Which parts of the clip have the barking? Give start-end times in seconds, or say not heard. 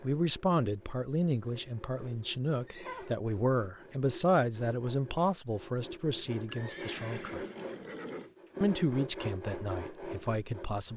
not heard.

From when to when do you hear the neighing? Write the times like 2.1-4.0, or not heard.
2.1-3.1, 6.5-8.3.